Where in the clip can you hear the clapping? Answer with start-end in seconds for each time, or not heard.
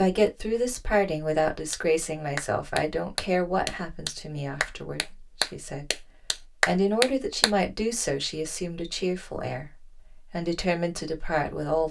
1.7-7.5.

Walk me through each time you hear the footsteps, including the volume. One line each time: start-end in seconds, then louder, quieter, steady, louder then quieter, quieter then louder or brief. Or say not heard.
not heard.